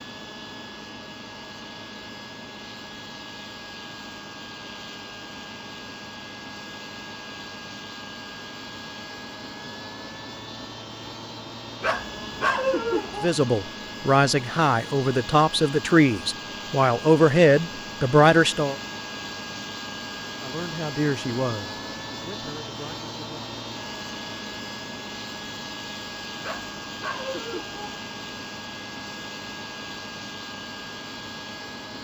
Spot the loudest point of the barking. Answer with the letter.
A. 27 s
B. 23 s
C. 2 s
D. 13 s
D.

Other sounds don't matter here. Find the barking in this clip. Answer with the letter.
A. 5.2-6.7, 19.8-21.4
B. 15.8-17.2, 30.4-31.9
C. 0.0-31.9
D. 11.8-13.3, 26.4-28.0
D.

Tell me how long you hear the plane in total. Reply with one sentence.
The plane can be heard for 32 seconds in total.